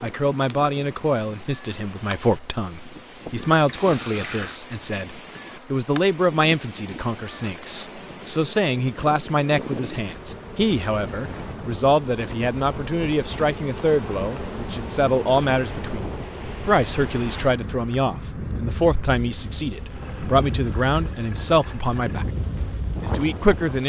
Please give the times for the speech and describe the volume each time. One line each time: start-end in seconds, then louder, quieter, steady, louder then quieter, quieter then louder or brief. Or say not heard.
0.0-23.8 steady.